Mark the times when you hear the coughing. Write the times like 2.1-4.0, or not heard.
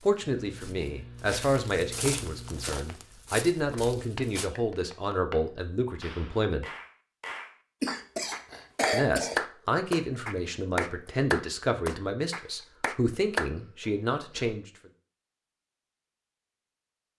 0.2-2.8, 7.8-9.4, 13.6-14.6.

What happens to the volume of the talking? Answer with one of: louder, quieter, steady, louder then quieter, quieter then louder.
steady.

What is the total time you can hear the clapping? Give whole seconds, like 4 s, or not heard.
9 s.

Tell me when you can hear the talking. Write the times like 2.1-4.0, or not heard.
0.0-6.7, 8.9-14.7.